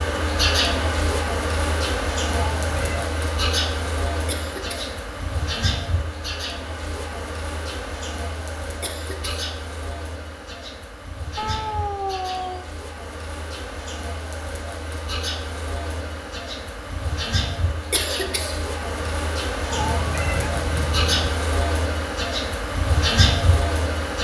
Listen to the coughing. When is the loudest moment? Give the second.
18 s.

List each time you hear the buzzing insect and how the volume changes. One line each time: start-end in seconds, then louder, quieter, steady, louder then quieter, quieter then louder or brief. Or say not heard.
0.0-24.1 quieter then louder.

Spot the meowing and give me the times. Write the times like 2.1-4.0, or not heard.
2.3-3.1, 11.3-12.7, 19.7-21.4.